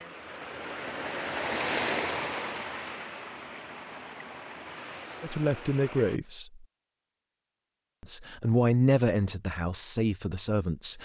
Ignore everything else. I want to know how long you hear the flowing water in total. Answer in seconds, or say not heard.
6 s.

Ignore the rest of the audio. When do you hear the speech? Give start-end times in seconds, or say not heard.
5.2-6.7, 8.0-11.0.